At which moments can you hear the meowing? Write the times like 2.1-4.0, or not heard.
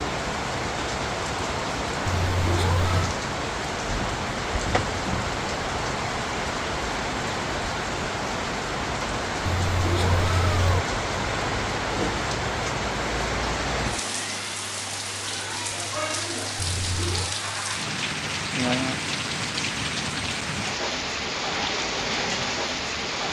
2.0-3.1, 9.4-10.8, 16.6-17.4.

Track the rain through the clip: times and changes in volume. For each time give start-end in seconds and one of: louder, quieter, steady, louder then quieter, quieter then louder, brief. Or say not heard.
0.0-23.2 steady.